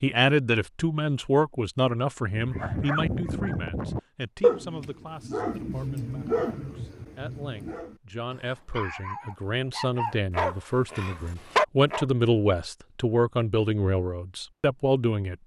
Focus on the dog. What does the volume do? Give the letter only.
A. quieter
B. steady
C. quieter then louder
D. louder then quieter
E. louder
C.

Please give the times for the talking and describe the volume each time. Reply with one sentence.
The talking can be heard from 0.0 to 15.4 s, getting quieter then louder.